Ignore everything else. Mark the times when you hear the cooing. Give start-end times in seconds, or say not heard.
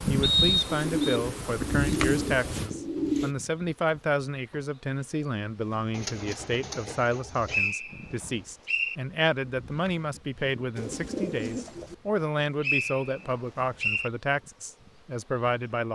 0.7-3.4, 5.9-7.7, 10.8-11.9.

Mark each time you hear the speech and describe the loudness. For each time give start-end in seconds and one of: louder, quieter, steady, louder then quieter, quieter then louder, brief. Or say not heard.
0.1-15.9 steady.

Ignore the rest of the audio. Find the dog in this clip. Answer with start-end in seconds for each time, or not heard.
not heard.